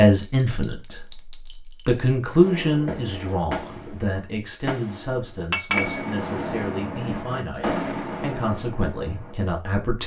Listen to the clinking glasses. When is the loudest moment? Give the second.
6 s.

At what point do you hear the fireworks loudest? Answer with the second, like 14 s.
8 s.